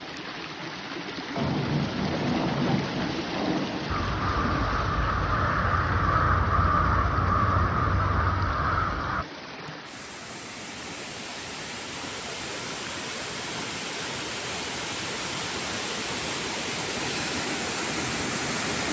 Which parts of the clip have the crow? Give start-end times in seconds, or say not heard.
3.9-9.2.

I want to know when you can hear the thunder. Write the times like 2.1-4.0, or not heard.
1.4-4.7.